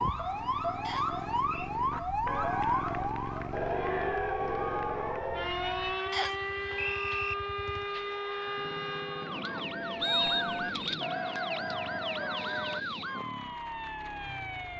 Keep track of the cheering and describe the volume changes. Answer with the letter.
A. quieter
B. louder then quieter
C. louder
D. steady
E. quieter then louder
E.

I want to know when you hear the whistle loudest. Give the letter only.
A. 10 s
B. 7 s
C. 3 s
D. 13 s
A.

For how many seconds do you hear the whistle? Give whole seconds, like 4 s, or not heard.
3 s.